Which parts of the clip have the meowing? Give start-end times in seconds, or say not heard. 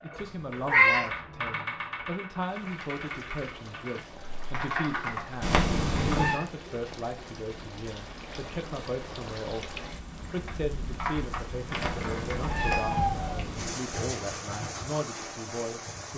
0.1-1.1, 5.4-6.4, 11.7-13.8.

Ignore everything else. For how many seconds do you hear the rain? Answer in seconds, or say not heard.
14 s.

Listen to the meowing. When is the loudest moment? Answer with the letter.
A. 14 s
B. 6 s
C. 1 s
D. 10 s
C.